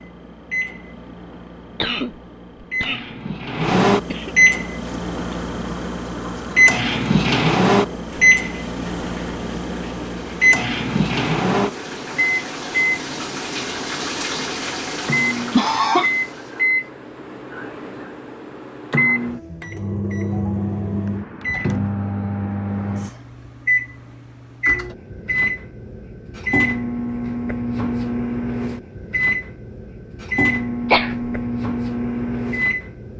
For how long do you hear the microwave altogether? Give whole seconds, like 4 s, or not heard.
33 s.